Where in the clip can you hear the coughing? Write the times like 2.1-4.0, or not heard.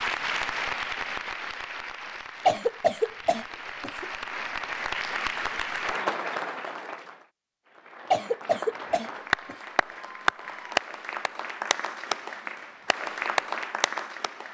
2.5-4.0, 8.1-9.6.